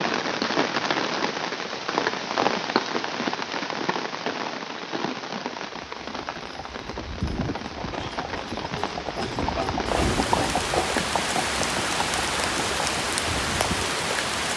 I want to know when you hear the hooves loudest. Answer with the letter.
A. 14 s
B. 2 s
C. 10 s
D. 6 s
C.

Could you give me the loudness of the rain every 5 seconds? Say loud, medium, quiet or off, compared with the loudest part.
loud, medium, loud.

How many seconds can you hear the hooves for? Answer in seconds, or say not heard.
8 s.